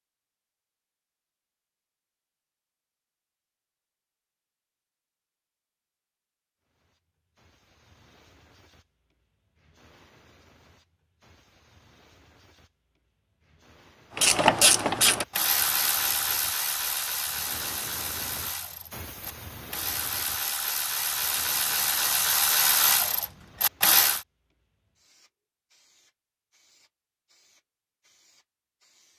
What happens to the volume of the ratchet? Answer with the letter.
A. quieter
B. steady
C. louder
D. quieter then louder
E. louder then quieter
D.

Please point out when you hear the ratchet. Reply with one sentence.
You can hear the ratchet from 14.2 to 24.2 s.